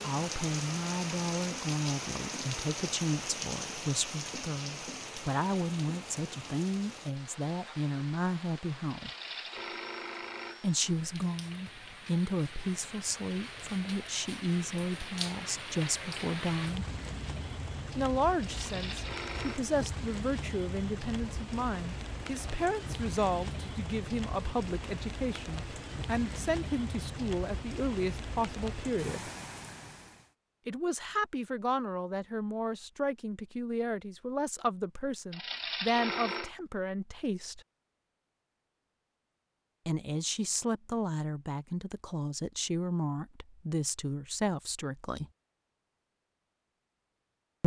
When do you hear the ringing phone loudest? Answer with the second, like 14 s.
36 s.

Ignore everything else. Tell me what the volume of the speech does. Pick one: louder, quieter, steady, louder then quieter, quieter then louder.
steady.